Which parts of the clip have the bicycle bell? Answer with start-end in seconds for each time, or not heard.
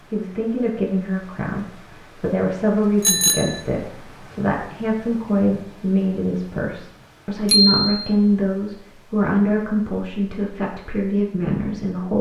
3.0-3.6, 7.5-8.0.